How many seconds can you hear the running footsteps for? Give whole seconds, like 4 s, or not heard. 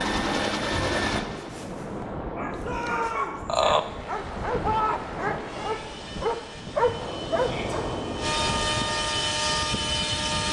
not heard.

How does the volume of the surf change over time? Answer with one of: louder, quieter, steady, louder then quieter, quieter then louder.
steady.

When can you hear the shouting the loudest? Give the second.
3 s.